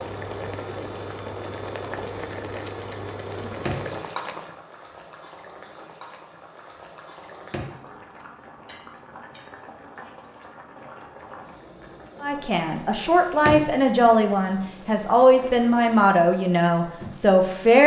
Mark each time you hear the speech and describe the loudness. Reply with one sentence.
You can hear the speech from 12.2 to 17.8 s, at a steady volume.